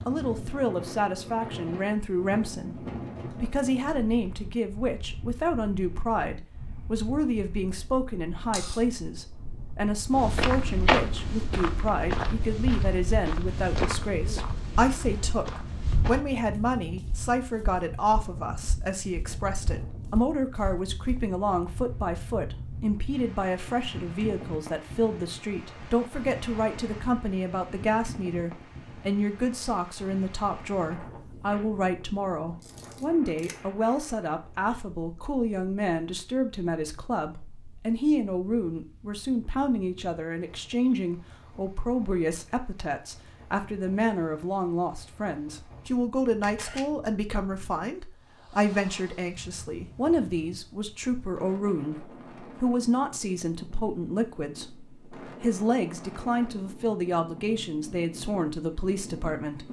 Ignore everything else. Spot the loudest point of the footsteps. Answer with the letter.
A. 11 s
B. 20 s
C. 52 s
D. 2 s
A.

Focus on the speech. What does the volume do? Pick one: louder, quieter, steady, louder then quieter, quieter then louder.
steady.